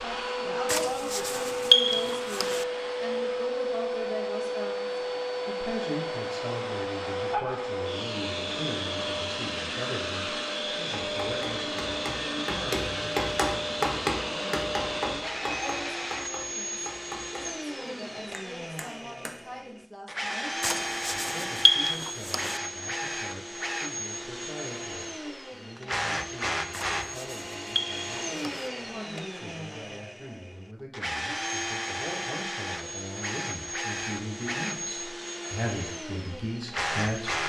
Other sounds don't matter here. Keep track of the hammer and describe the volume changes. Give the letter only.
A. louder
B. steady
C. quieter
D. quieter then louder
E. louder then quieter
E.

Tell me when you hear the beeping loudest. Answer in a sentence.
The loudest moment of the beeping is at 2 seconds.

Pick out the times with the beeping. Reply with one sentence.
You can hear the beeping from 0.7 to 2.6 s, from 20.6 to 22.6 s and from 26.7 to 28.7 s.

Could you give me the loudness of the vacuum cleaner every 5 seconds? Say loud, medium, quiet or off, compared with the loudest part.
loud, loud, loud, medium, loud, loud, loud, loud.